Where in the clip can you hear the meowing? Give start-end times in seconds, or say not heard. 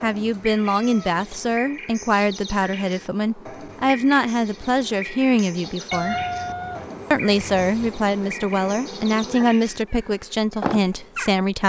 0.3-1.2, 5.9-7.9.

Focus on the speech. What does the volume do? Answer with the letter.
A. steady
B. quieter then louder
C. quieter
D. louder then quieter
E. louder
A.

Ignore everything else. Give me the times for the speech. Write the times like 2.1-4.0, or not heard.
0.0-6.2, 7.1-11.6.